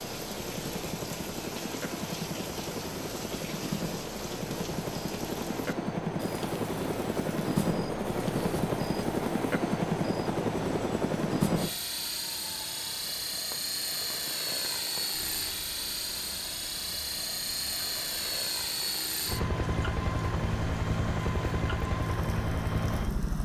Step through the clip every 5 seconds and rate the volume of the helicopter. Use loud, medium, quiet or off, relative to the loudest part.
medium, loud, loud, loud, loud.